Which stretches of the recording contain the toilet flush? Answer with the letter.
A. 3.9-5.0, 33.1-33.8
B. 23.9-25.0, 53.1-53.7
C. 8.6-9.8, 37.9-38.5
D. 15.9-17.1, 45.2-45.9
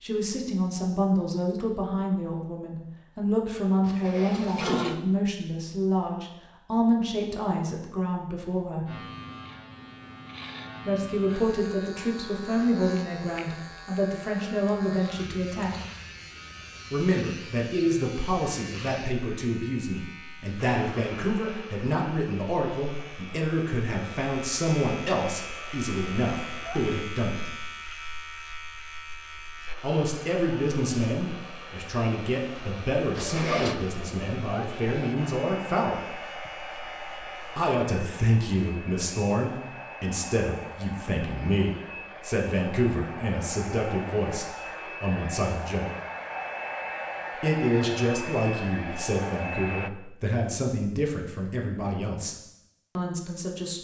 A.